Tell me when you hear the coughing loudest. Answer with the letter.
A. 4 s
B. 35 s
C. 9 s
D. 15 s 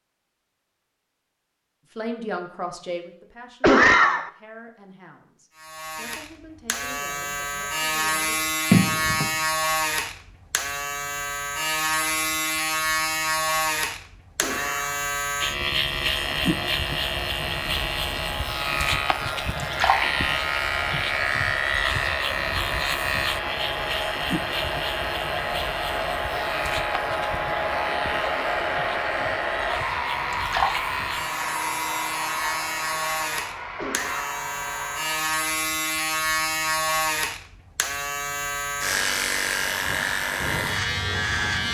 A.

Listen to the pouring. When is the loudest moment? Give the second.
9 s.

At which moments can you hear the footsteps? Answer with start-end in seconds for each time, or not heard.
not heard.